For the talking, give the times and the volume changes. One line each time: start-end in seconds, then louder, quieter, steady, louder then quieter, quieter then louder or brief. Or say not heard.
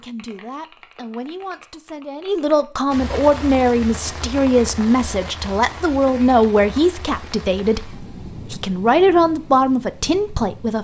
0.0-10.8 louder.